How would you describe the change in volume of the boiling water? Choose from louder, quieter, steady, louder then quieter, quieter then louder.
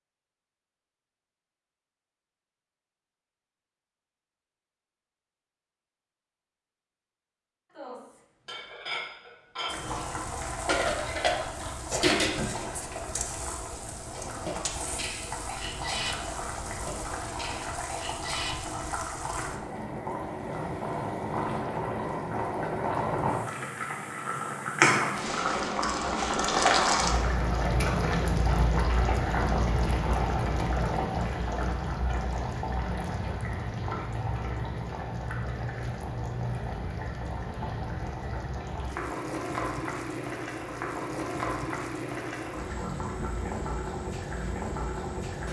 louder then quieter.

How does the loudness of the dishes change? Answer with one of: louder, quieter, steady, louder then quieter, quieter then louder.
louder then quieter.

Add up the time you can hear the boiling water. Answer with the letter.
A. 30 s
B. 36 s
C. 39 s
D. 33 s
B.